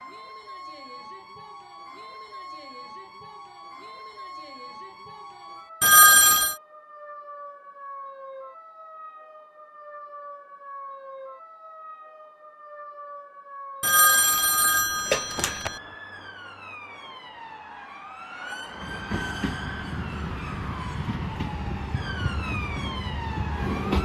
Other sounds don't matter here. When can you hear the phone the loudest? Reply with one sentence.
The volume of the phone peaks at 6 seconds.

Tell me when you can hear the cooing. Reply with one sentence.
The cooing can't be heard in this clip.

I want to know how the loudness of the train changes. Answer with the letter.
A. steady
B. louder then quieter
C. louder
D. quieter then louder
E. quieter
A.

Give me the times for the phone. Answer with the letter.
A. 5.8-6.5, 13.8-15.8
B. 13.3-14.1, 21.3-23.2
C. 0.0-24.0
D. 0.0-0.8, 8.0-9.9
A.